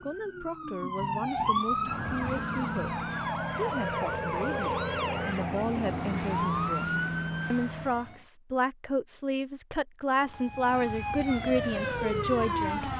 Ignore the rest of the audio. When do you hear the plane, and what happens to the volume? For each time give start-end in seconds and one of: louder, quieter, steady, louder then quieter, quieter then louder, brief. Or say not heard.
1.9-8.0 steady.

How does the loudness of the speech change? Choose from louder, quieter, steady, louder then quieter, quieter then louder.
louder.